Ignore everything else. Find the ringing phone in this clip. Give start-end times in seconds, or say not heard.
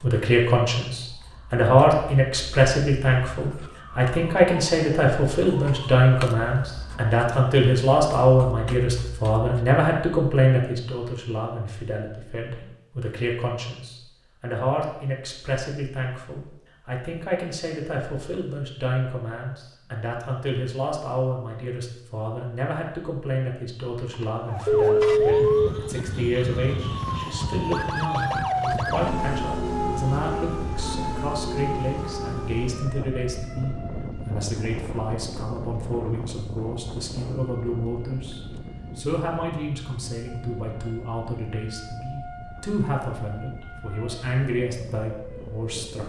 24.1-25.7.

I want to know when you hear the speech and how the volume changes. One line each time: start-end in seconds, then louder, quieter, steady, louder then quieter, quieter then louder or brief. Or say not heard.
0.0-46.0 quieter.